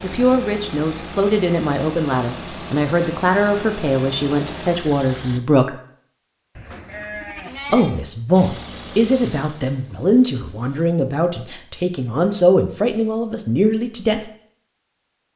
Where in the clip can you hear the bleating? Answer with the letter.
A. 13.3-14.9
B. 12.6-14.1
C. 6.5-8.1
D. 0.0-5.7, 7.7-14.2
C.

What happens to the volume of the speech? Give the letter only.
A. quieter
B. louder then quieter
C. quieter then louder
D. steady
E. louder
D.